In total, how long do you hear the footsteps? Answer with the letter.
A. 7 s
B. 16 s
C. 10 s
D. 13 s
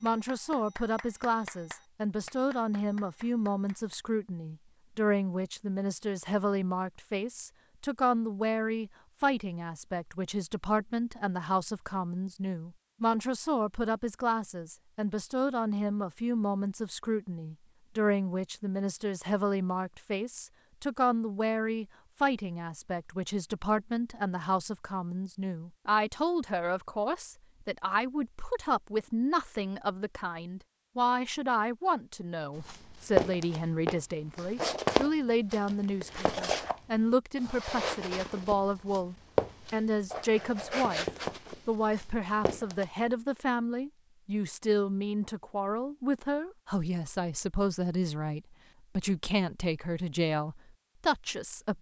C.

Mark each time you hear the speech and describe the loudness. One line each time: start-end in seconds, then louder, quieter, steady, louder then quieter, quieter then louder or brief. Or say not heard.
0.0-41.0 steady
41.6-51.7 steady.